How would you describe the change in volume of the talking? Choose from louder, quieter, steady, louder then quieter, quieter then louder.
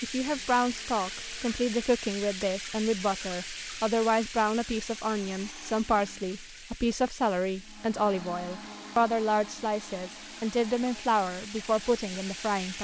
steady.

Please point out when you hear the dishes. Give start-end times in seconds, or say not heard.
not heard.